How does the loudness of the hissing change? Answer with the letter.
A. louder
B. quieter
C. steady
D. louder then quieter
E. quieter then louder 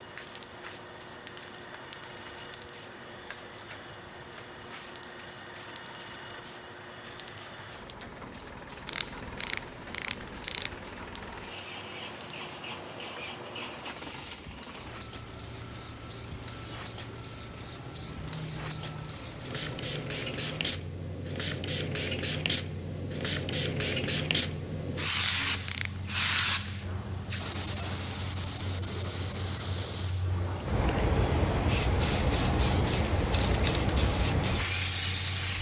A.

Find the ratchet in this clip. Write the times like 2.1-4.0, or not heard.
8.8-10.8, 25.1-26.6.